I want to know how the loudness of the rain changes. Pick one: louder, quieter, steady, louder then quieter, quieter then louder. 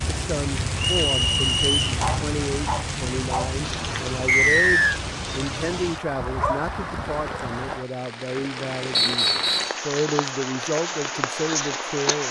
steady.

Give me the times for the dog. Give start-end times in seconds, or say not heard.
1.9-3.5, 6.2-7.7.